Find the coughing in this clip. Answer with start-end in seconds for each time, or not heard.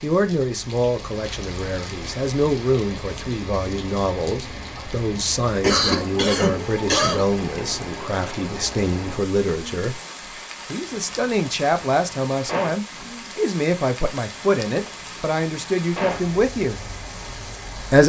5.6-7.2.